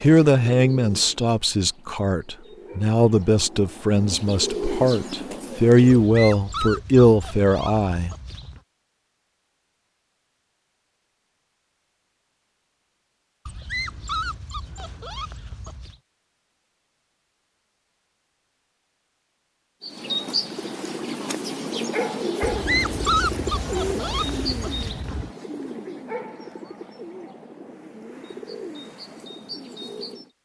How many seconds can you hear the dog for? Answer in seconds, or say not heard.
8 s.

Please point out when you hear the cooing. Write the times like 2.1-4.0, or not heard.
0.0-6.1, 19.8-30.2.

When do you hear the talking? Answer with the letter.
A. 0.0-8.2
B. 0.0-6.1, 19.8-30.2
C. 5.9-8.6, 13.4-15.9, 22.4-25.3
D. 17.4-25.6
A.